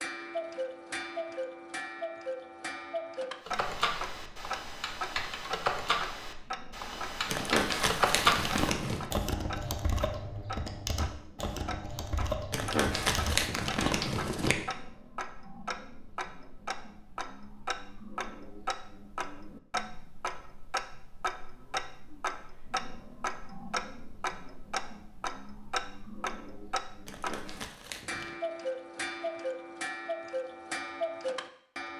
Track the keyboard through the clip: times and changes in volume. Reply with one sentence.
You can hear the keyboard from 3.5 to 14.1 s, getting louder then quieter.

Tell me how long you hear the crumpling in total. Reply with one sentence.
The crumpling can be heard for 5 seconds in total.